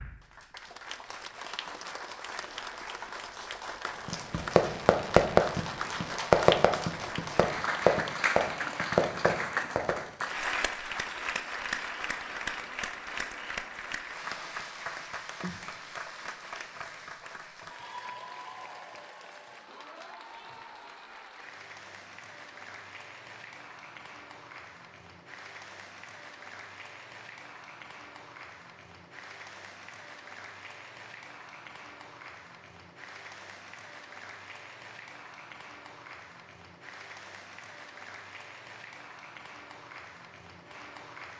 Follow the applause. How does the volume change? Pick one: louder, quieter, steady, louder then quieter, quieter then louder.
quieter.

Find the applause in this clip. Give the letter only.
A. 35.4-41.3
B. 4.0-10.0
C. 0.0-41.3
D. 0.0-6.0
C.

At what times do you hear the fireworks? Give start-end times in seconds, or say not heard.
4.0-10.0.